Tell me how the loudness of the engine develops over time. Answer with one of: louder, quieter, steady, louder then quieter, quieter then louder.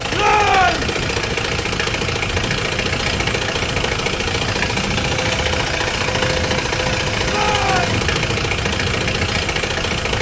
steady.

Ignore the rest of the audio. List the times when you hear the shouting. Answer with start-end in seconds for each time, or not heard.
0.1-0.9, 7.2-8.0.